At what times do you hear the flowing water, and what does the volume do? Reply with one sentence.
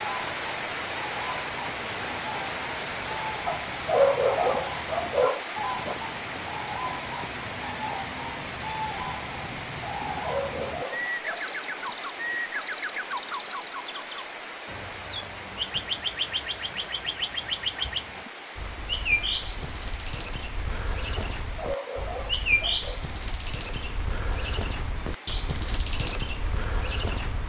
You can hear the flowing water from 0.0 to 27.4 s, getting quieter.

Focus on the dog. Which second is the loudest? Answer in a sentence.
The volume of the dog peaks at 4 seconds.